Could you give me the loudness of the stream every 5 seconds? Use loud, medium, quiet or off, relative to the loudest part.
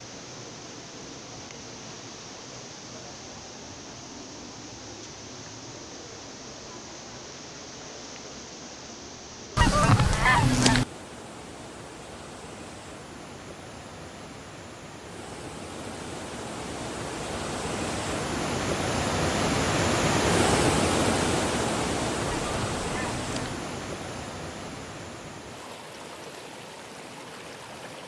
quiet, quiet, quiet, loud, loud, quiet.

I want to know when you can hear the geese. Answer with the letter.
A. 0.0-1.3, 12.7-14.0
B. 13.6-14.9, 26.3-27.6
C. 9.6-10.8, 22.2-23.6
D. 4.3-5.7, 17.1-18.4
C.